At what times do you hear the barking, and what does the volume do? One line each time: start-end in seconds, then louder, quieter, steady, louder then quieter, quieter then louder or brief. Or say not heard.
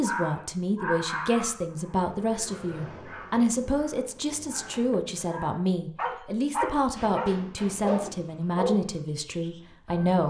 0.0-10.2 quieter then louder.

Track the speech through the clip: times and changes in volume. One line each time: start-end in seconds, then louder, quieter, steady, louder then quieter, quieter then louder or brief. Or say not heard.
0.0-10.2 steady.